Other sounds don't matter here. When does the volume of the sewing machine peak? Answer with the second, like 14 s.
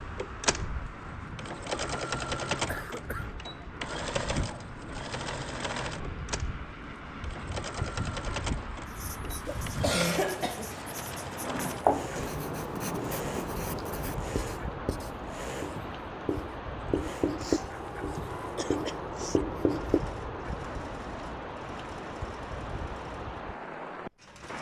2 s.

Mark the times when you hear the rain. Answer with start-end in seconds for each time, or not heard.
0.0-24.5.